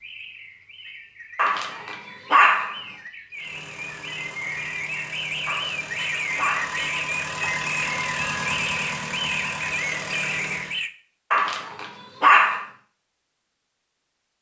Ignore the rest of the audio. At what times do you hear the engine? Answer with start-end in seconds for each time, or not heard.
3.3-10.8.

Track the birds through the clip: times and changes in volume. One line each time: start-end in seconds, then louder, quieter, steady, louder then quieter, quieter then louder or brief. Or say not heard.
0.0-10.9 louder.